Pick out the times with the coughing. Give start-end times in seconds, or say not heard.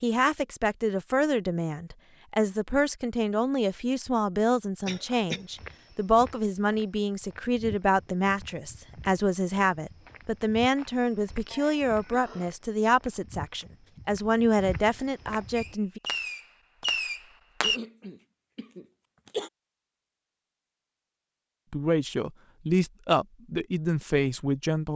4.8-5.5, 11.5-12.6, 17.6-19.5.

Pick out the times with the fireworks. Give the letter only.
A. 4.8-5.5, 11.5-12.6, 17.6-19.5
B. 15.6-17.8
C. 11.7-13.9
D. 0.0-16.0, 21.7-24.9
B.